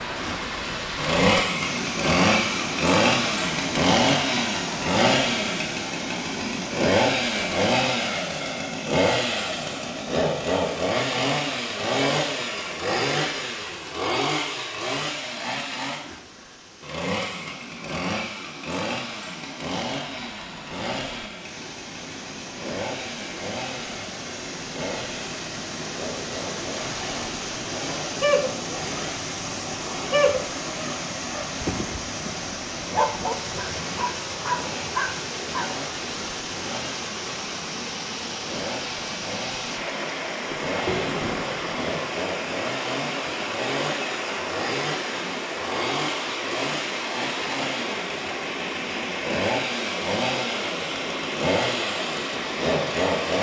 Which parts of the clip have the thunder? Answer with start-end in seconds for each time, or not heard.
40.5-42.0.